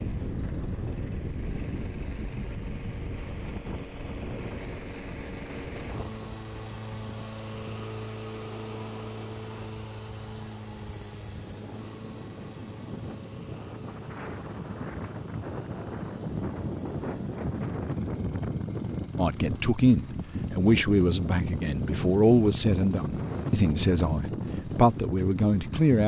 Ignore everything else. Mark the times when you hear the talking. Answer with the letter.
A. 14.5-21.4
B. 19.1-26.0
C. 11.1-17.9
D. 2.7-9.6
B.